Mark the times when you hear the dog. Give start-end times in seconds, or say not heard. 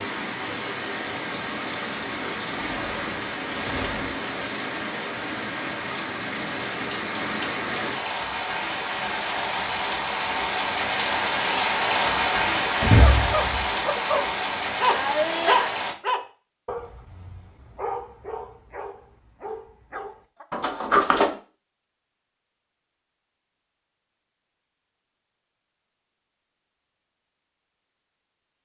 12.9-20.4.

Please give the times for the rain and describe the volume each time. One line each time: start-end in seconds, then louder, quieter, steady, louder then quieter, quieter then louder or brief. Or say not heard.
0.0-15.9 louder.